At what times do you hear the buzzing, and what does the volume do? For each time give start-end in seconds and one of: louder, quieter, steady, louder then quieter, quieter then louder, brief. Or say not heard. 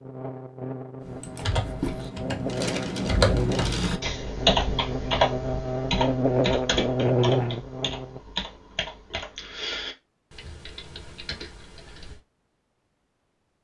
0.0-8.2 louder.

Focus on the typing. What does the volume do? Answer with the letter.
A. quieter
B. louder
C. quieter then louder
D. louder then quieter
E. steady
A.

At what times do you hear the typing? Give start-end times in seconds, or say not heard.
1.0-12.2.